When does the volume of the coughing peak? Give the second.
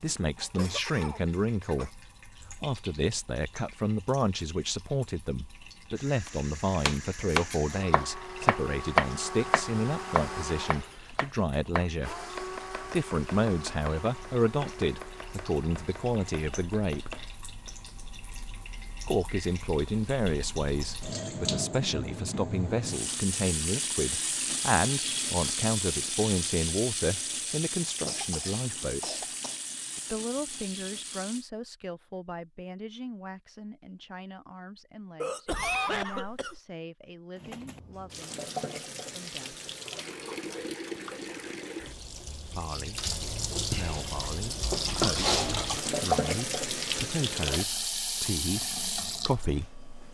36 s.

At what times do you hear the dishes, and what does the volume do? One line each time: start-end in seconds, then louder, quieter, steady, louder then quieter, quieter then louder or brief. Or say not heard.
not heard.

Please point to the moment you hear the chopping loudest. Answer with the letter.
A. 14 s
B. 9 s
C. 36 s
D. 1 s
B.